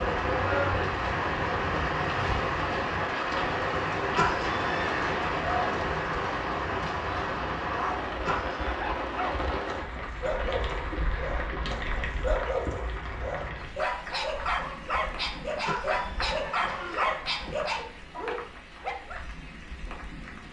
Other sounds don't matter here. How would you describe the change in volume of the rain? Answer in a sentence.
The loudness of the rain goes down.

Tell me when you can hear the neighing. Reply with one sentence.
You can hear the neighing from 4.2 to 5.0 s, from 8.2 to 8.7 s and from 15.7 to 17.1 s.